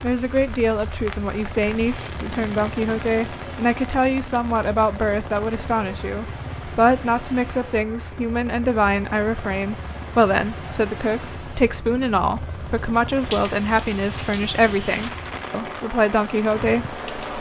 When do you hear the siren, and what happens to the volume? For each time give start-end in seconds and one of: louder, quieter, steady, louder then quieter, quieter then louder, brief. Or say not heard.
not heard.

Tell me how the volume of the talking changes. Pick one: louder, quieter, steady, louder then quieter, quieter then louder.
steady.